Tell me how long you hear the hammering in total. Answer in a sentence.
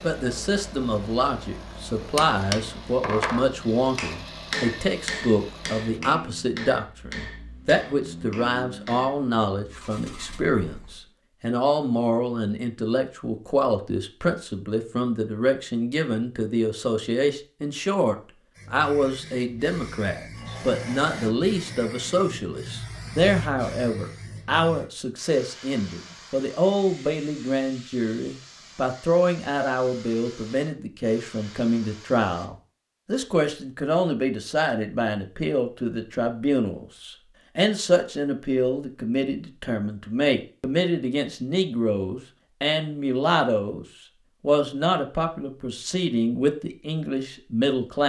You can hear the hammering for 7 seconds altogether.